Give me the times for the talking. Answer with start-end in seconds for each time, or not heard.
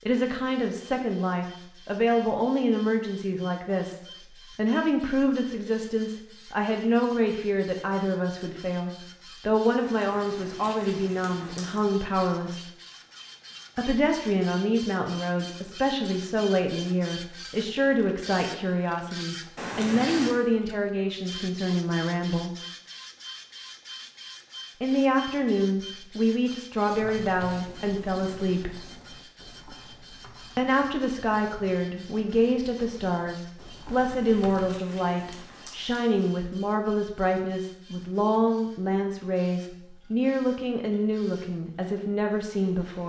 0.1-12.7, 13.8-22.6, 24.8-28.8, 30.6-43.0.